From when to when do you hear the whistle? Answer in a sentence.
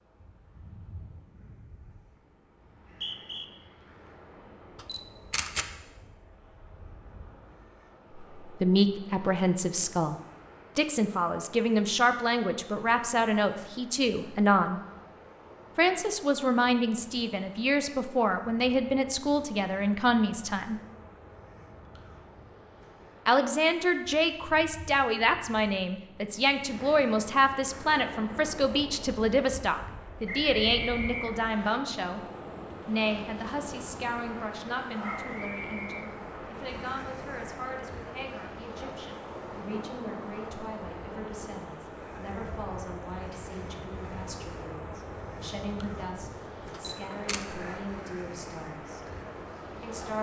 You can hear the whistle from 2.6 to 3.5 s, from 30.2 to 31.8 s and from 35.0 to 36.1 s.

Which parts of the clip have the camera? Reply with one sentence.
You can hear the camera from 4.8 to 5.7 s and from 46.7 to 47.5 s.